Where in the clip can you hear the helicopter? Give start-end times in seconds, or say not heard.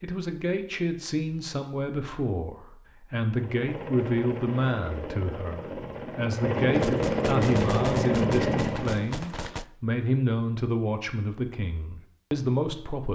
3.2-9.1.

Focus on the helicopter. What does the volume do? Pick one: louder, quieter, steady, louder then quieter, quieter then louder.
louder.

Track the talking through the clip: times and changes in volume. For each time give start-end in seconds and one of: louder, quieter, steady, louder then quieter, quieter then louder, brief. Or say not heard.
0.0-13.1 steady.